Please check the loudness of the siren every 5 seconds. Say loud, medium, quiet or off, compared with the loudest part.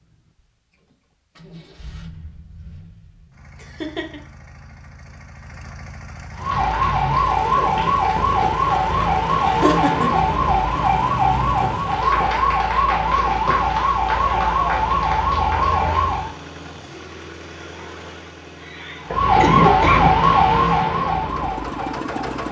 off, loud, loud, loud, loud.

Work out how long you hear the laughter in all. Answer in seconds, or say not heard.
4 s.